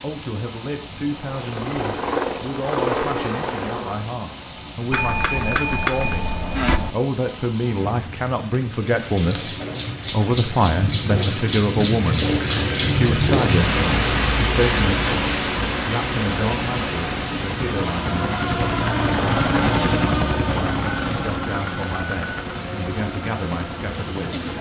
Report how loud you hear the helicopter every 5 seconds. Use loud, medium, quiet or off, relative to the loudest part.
loud, off, off, loud, loud.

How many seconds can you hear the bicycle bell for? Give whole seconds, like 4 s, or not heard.
4 s.